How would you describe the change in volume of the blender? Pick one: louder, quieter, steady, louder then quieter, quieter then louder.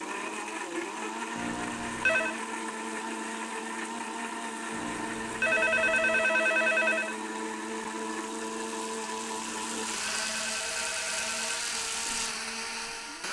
steady.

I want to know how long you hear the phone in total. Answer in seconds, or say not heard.
6 s.